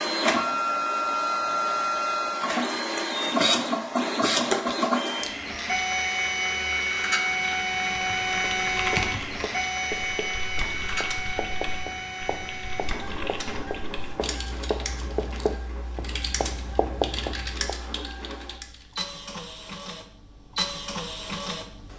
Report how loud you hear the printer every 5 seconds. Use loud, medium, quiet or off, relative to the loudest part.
loud, loud, medium, quiet, medium.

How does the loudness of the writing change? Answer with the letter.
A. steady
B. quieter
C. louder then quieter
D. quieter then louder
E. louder
E.